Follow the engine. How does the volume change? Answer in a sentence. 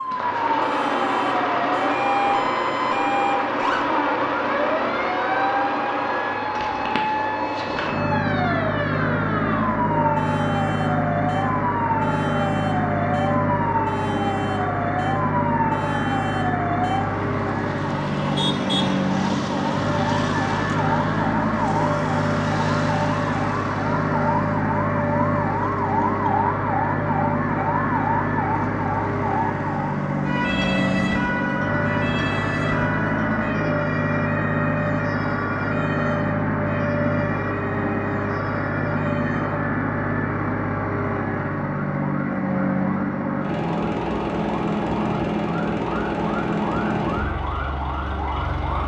The volume of the engine stays about the same.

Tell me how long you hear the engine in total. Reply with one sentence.
The engine can be heard for 49 seconds in total.